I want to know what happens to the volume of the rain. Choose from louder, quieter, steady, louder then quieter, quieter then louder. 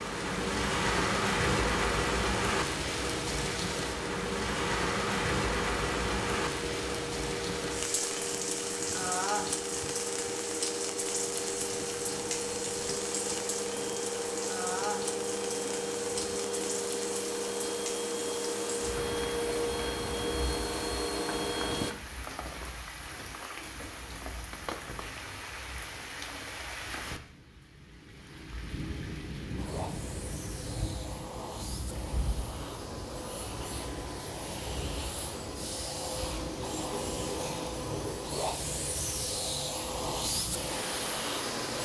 quieter.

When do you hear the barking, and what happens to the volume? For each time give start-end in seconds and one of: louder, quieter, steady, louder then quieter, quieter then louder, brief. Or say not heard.
not heard.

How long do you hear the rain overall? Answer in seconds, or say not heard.
42 s.